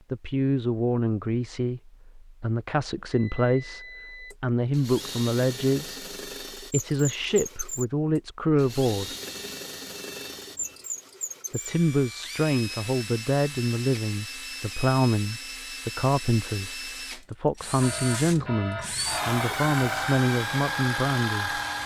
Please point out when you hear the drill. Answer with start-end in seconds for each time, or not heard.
4.3-21.8.